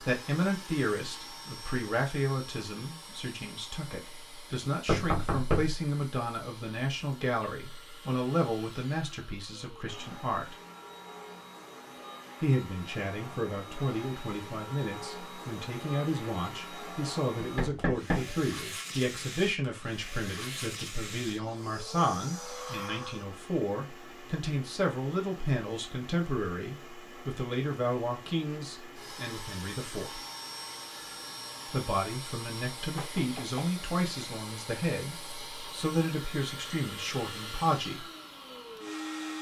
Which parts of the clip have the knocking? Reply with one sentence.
The knocking can be heard from 4.8 to 5.8 s, from 17.4 to 18.8 s and from 33.0 to 33.7 s.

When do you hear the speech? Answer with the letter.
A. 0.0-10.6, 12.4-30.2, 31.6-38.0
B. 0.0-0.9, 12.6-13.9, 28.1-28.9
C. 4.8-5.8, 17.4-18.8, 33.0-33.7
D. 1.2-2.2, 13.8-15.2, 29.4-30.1
A.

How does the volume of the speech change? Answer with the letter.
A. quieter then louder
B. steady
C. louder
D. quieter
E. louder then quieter
B.